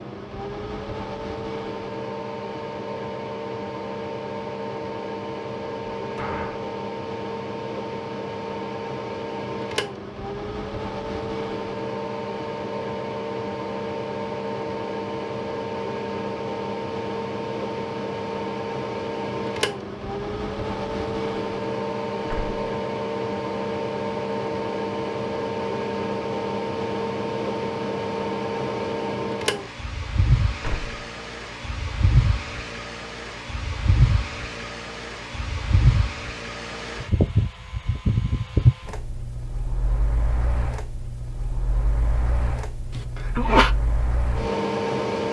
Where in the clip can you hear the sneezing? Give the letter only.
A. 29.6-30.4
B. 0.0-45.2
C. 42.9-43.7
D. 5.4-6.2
C.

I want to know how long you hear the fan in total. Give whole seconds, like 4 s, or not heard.
45 s.